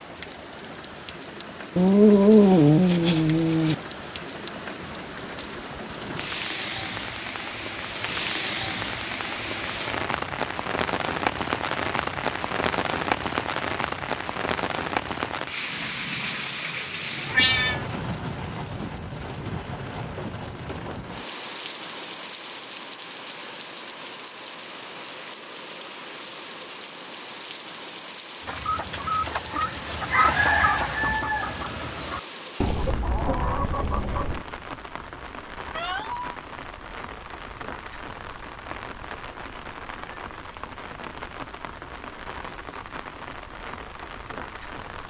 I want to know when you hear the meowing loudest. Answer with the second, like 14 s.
2 s.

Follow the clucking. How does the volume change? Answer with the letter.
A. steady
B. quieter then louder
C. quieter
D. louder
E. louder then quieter
E.